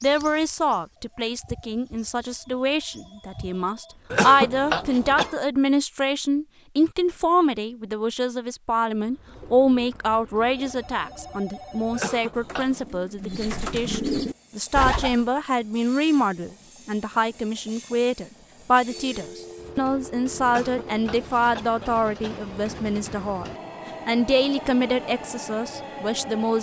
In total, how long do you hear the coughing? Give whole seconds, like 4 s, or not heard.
4 s.